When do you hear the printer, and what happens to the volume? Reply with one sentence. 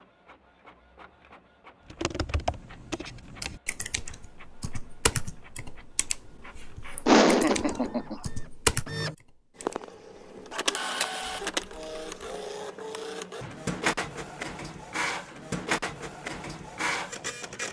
You can hear the printer from 0.0 to 17.6 s, getting louder.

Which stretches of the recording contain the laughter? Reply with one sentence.
You can hear the laughter from 7.0 to 8.2 s.